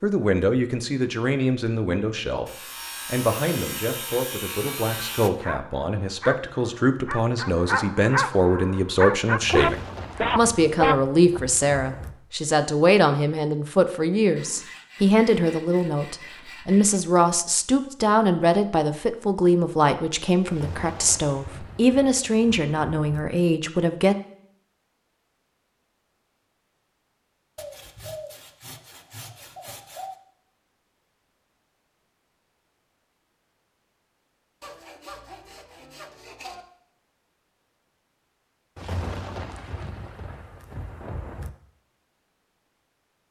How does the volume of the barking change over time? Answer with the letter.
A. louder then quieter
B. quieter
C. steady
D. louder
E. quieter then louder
D.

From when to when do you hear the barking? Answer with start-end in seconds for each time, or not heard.
5.4-11.4.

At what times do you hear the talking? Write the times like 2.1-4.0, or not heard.
0.0-24.1.